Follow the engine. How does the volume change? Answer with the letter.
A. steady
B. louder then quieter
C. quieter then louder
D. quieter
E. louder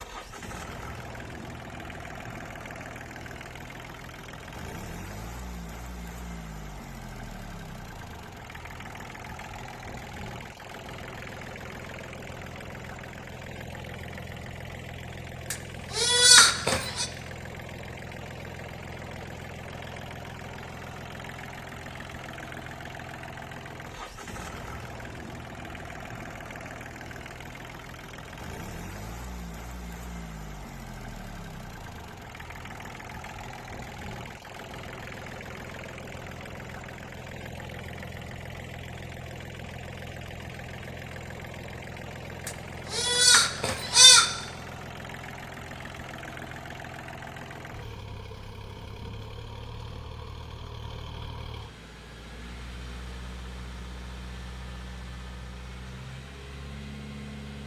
A.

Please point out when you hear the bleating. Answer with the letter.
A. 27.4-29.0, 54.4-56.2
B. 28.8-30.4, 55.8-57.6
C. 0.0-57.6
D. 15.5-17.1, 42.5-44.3
D.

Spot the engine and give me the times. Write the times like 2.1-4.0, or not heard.
0.0-57.6.